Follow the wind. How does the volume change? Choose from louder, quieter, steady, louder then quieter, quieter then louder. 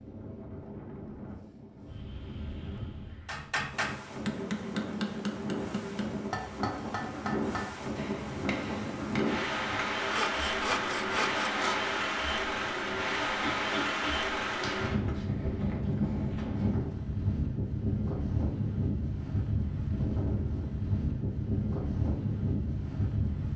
louder.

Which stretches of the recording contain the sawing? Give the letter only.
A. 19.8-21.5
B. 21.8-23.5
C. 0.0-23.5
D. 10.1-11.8
D.